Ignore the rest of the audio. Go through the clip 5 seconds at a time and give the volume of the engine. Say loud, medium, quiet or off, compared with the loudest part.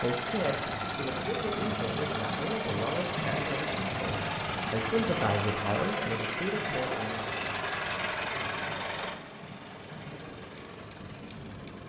loud, loud, quiet.